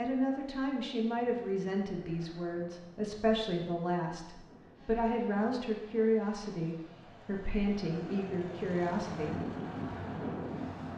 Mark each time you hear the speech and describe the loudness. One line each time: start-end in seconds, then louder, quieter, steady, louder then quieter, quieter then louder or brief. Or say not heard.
0.0-9.3 steady.